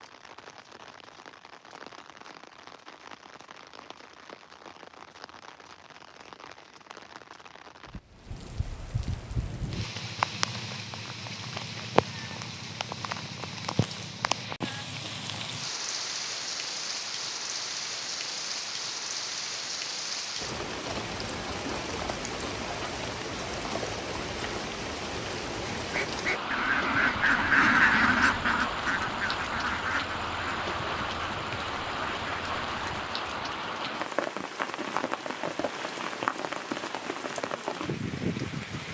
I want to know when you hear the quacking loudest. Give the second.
28 s.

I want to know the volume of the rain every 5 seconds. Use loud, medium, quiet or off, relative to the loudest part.
quiet, medium, loud, loud, loud, loud, loud, loud.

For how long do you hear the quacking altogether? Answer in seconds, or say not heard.
7 s.